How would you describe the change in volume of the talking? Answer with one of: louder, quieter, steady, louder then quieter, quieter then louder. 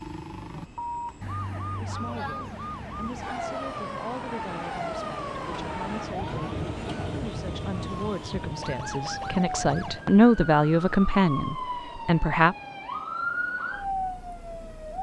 louder.